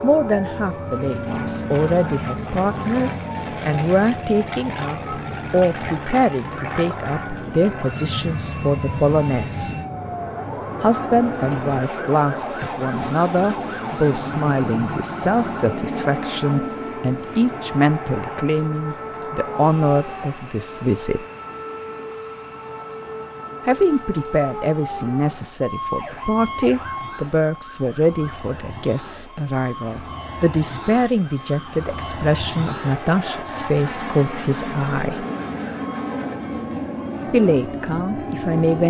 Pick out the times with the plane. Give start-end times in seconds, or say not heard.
0.0-38.8.